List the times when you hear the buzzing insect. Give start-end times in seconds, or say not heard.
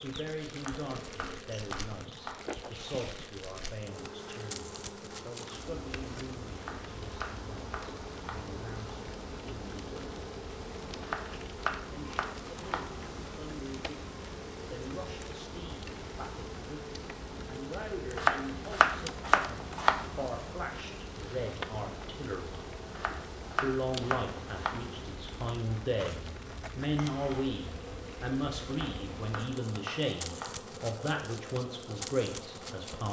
0.0-33.0.